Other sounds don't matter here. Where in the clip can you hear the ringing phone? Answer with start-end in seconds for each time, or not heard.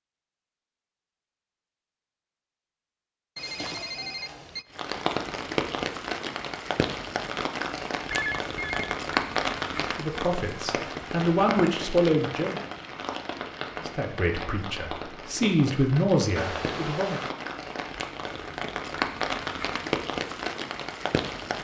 3.4-4.7, 8.1-8.9, 16.4-17.4.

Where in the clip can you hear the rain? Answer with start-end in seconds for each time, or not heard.
4.7-21.5.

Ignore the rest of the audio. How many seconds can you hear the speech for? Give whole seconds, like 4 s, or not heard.
6 s.